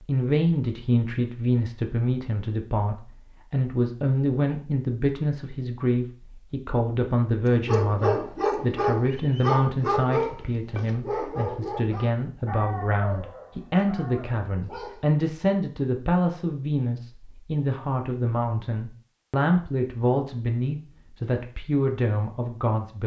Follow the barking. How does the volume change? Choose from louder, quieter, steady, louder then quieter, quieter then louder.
quieter.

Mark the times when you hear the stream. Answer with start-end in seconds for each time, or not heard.
not heard.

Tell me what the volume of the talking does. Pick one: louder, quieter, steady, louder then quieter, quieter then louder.
steady.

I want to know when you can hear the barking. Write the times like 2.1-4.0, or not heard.
7.7-15.1.